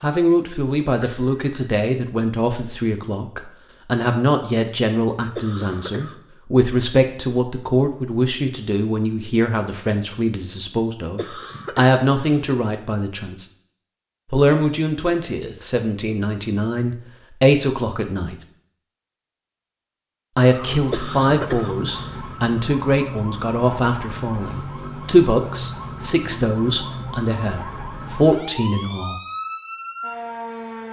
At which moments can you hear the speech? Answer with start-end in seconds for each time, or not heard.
0.0-13.4, 14.3-18.4, 20.4-29.2.